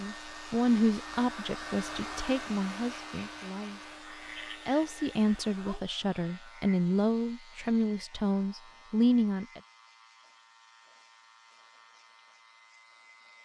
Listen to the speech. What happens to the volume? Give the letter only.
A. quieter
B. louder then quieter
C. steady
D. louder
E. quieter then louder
E.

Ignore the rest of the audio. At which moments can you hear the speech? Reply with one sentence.
The speech can be heard from 0.0 to 9.6 s.